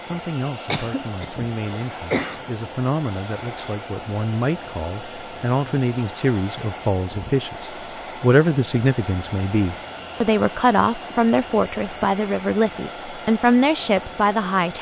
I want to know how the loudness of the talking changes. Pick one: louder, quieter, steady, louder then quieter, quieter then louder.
louder.